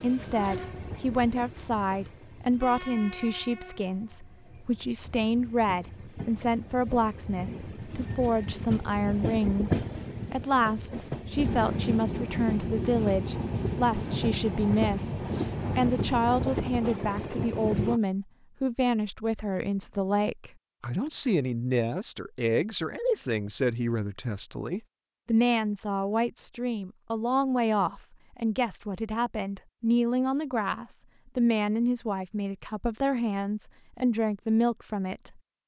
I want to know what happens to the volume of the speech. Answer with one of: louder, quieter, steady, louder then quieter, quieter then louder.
steady.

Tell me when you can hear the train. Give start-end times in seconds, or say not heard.
0.0-18.0.